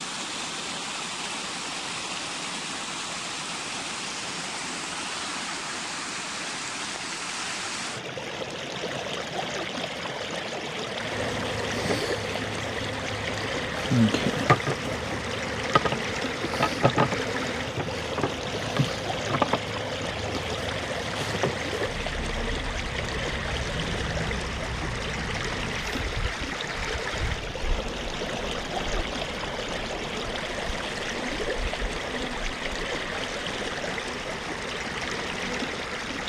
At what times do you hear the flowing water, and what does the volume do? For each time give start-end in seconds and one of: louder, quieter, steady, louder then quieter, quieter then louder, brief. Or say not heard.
0.0-36.2 steady.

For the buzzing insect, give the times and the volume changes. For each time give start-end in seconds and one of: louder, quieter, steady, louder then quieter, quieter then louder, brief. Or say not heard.
10.9-36.2 quieter.